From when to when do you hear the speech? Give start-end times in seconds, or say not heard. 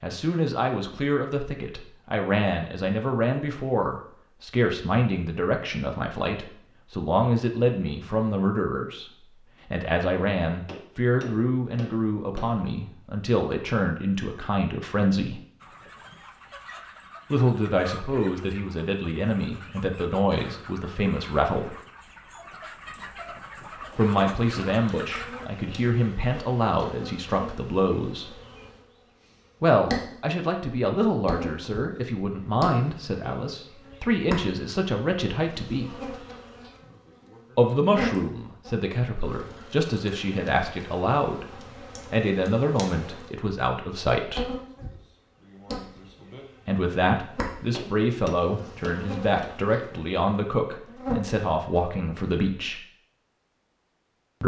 0.0-15.4, 17.3-21.8, 23.9-28.4, 29.6-36.0, 37.5-44.5, 46.6-52.8.